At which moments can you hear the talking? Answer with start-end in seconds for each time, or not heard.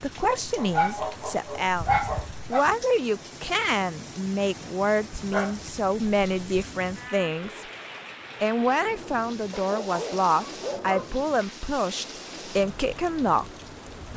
0.0-7.7, 8.4-13.4.